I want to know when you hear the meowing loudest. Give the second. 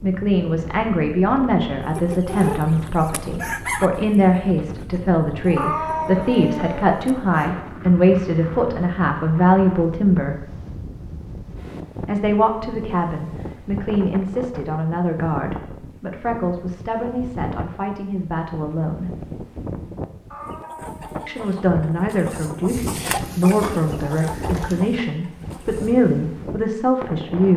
6 s.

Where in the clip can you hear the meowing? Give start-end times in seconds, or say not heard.
5.5-6.8, 20.3-21.4.